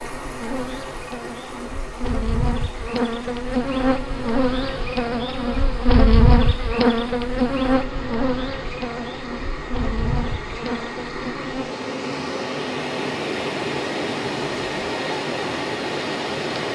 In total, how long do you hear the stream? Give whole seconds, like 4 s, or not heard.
17 s.